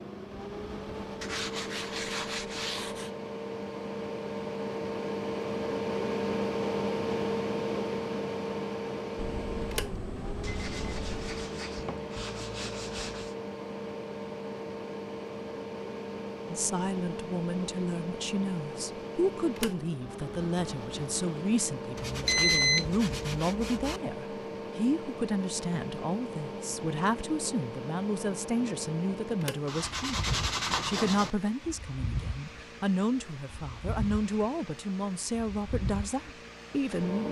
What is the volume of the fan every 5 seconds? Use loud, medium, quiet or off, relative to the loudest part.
medium, loud, medium, medium, medium, medium, medium, medium.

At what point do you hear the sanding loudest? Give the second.
31 s.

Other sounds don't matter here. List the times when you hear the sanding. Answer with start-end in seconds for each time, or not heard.
1.2-3.1, 10.4-13.3, 21.9-24.0, 29.6-31.3.